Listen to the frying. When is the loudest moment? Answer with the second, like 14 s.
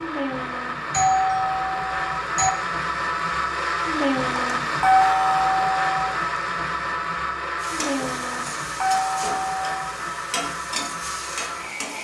11 s.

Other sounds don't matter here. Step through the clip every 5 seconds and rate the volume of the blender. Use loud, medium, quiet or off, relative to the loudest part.
loud, loud, medium.